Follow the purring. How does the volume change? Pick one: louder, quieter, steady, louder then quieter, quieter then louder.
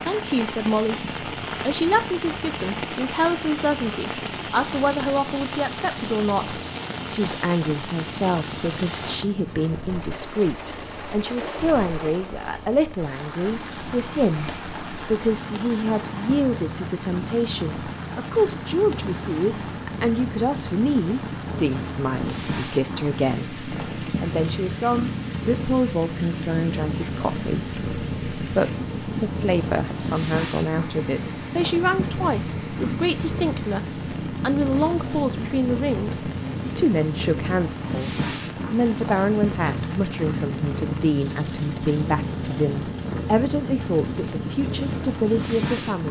louder.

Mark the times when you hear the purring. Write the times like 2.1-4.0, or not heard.
0.0-46.0.